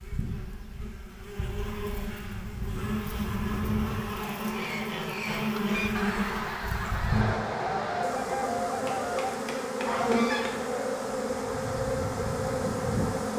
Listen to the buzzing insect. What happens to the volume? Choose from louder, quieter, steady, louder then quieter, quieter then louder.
louder.